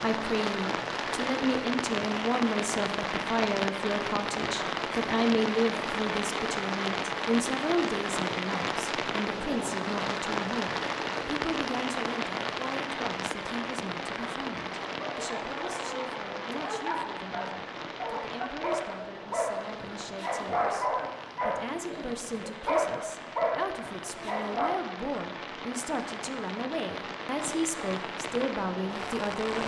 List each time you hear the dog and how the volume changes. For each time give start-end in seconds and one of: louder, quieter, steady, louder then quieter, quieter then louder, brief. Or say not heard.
15.0-24.7 louder.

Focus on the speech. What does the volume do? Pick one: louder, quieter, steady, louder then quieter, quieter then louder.
quieter then louder.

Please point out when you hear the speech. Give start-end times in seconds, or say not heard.
0.0-29.6.